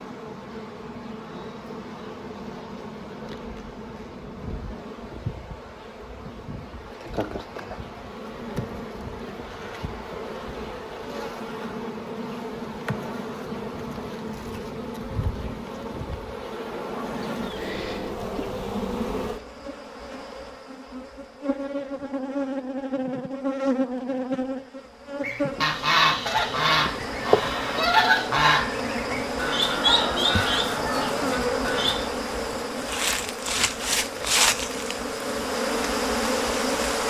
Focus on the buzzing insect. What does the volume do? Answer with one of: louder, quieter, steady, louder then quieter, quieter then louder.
louder.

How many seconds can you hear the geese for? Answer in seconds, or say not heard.
7 s.